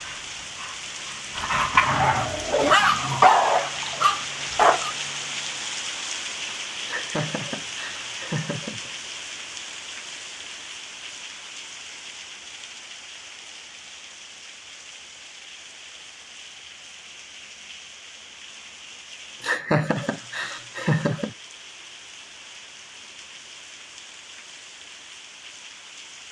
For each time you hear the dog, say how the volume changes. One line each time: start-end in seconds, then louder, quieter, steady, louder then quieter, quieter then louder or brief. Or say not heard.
0.0-4.9 louder then quieter.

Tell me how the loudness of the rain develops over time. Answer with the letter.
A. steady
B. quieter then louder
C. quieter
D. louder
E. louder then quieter
C.